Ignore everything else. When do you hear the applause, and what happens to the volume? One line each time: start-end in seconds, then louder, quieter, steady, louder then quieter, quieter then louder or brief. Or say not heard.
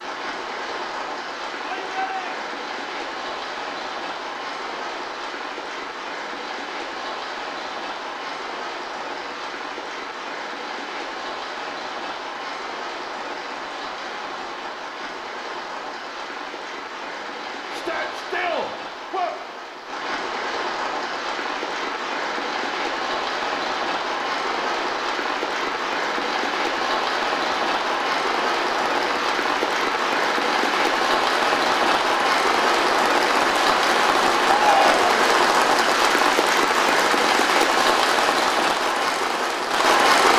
0.0-40.3 louder.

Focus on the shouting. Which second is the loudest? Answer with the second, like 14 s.
35 s.